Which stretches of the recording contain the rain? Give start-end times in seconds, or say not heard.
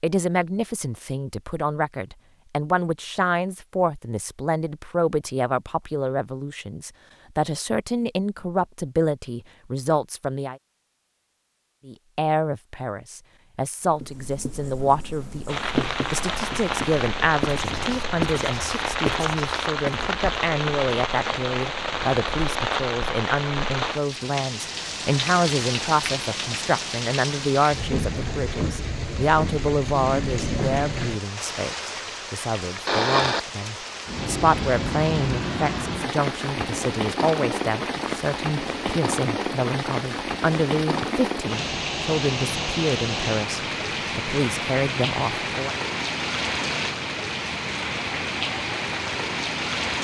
15.4-49.9.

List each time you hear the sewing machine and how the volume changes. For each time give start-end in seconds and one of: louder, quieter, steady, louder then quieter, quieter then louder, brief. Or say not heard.
not heard.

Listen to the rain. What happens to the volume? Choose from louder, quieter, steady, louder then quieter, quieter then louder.
steady.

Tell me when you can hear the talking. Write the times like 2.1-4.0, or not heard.
0.0-10.6, 11.8-45.8.